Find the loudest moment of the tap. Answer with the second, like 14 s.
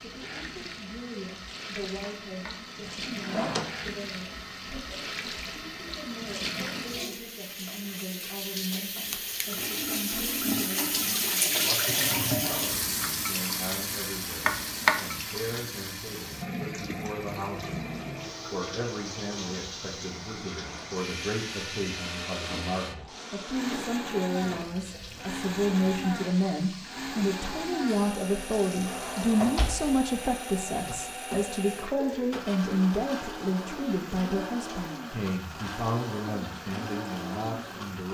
12 s.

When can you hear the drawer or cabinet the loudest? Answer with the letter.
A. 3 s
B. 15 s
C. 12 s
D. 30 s
B.